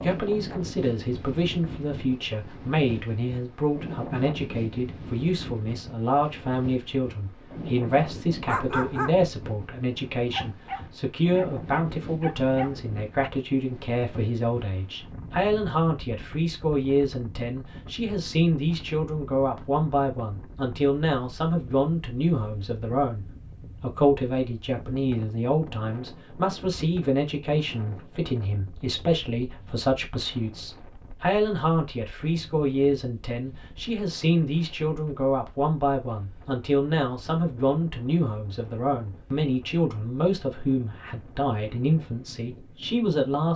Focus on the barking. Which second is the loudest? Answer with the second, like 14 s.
9 s.